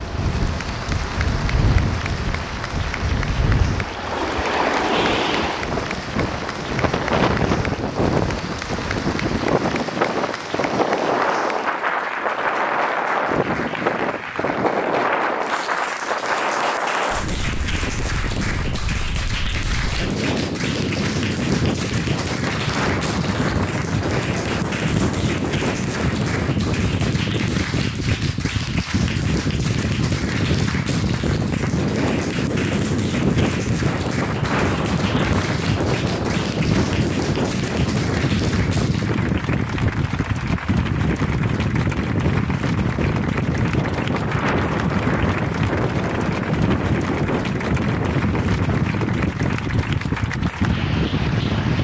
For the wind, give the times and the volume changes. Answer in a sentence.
You can hear the wind from 0.0 to 51.7 s, at a steady volume.